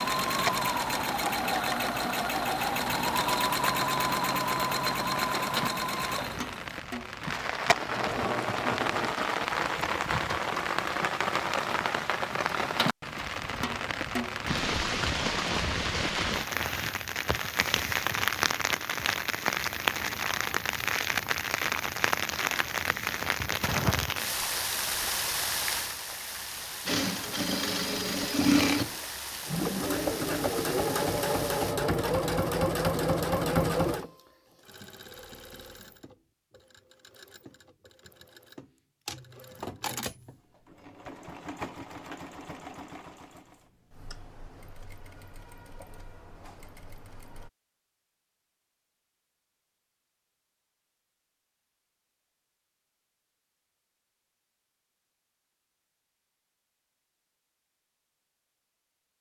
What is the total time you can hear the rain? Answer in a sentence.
The rain can be heard for 32 seconds in total.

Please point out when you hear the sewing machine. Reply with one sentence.
You can hear the sewing machine from 0.0 to 9.2 s and from 26.9 to 47.5 s.